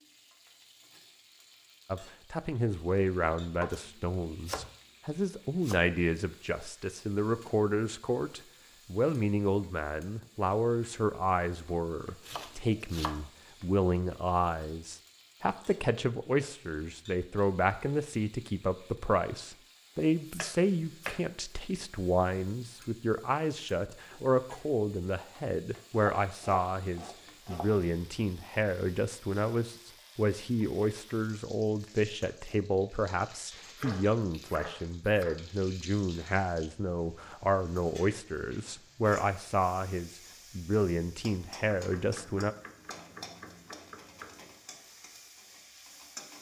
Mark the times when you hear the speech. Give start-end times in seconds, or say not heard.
1.9-42.5.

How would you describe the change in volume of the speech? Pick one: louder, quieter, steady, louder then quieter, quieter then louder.
steady.